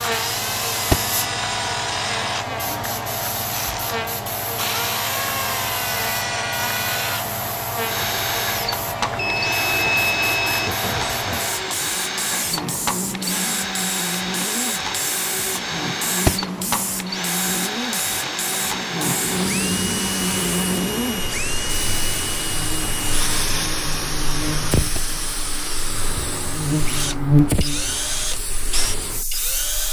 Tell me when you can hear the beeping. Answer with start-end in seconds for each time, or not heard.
9.2-10.7.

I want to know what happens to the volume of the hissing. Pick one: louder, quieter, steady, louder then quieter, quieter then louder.
steady.